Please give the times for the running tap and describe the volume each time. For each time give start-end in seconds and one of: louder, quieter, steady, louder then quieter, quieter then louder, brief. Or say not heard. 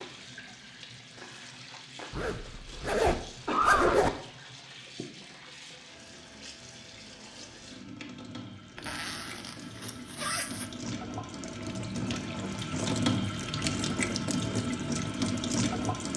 0.0-16.1 louder.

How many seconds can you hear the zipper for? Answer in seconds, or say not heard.
4 s.